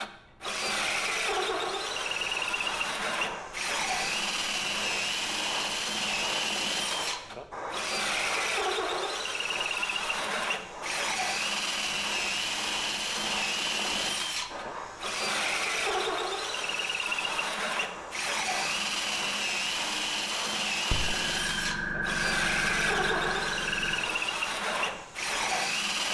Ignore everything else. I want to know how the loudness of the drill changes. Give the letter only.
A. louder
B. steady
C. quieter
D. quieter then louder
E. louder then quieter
B.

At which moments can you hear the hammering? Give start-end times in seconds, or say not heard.
not heard.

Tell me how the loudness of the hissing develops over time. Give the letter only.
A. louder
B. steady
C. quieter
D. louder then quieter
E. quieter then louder
A.